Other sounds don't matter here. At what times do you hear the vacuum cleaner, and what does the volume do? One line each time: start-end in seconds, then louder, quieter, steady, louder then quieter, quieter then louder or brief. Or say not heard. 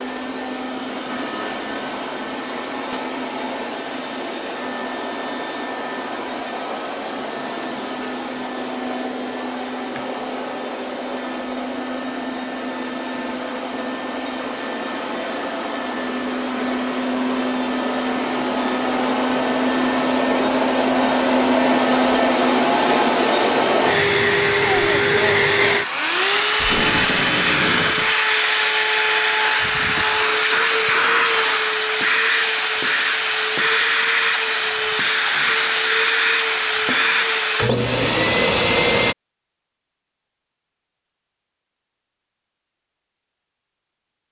0.0-39.1 louder.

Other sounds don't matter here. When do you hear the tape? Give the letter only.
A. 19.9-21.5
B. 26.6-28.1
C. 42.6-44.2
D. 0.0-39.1
B.